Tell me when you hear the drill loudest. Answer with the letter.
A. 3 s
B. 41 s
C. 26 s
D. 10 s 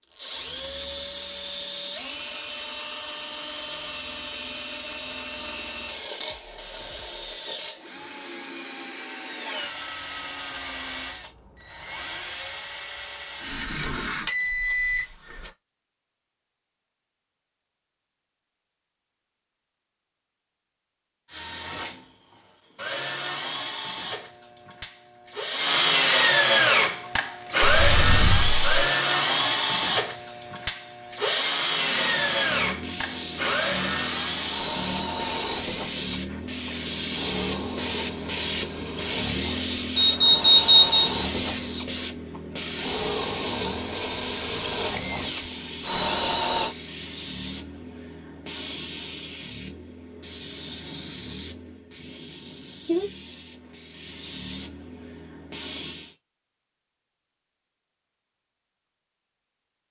C.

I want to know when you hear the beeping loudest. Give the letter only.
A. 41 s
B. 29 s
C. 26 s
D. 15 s
A.